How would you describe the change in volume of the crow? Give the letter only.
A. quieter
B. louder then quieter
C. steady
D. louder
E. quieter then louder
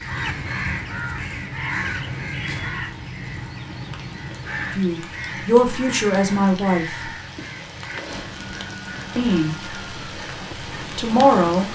A.